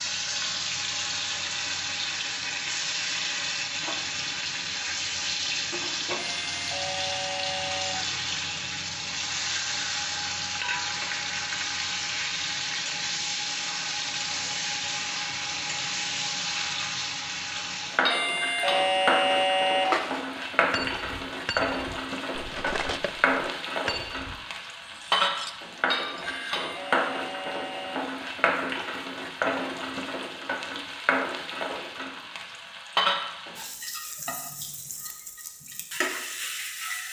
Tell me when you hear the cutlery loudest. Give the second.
20 s.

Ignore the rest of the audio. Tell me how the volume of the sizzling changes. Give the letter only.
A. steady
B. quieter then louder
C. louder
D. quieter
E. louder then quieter
A.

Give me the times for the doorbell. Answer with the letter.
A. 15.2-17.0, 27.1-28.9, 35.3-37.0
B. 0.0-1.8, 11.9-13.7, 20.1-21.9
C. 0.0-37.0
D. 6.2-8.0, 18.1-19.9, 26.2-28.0
D.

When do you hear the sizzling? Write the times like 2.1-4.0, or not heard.
0.0-37.0.